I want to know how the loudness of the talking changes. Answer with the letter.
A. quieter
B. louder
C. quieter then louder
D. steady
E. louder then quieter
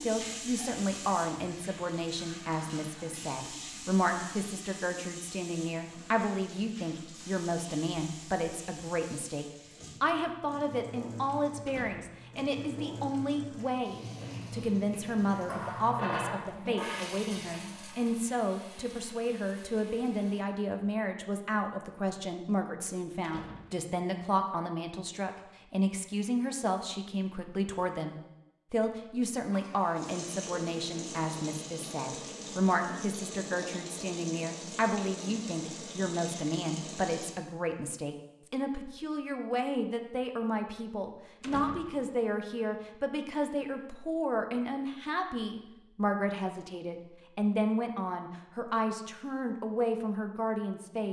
D.